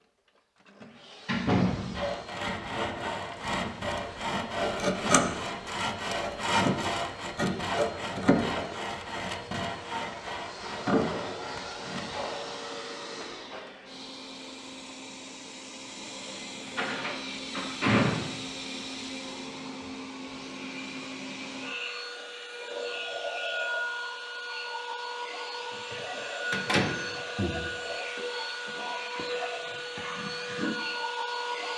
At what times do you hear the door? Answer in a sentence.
The door can be heard from 0.8 to 2.1 s, from 16.6 to 18.3 s and from 26.5 to 27.6 s.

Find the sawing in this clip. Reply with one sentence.
The sawing can be heard from 1.9 to 12.6 s.